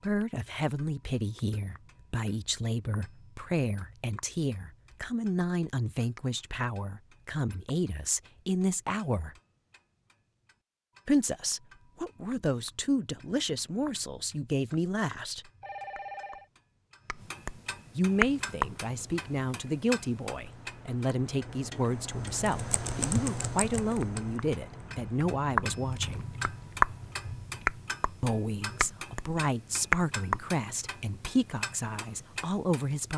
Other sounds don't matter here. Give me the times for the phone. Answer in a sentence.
You can hear the phone from 15.6 to 16.4 s.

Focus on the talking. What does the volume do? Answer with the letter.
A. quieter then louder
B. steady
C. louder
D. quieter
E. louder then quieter
B.